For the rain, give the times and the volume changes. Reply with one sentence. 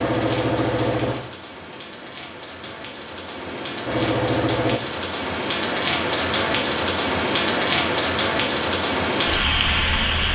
The rain can be heard from 0.0 to 10.3 s, getting louder.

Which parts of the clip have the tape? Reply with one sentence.
The tape can't be heard in this clip.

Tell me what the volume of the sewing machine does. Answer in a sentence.
The volume of the sewing machine goes down, then up.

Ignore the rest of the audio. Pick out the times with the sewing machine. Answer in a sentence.
You can hear the sewing machine from 0.0 to 4.8 s.